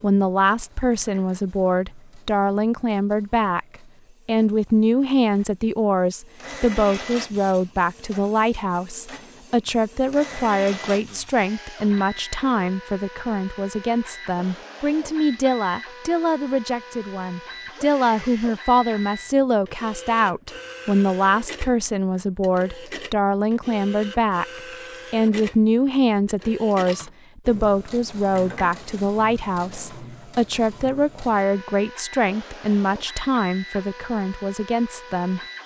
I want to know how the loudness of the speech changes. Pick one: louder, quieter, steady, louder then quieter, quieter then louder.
steady.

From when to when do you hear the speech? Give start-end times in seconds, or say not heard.
0.0-3.6, 4.2-35.4.